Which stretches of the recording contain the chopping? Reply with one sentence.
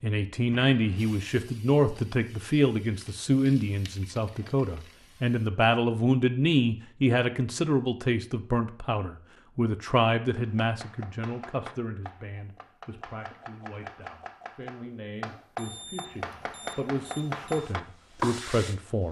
You can hear the chopping from 10.3 to 18.6 s.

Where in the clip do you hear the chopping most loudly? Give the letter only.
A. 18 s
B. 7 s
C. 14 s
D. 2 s
A.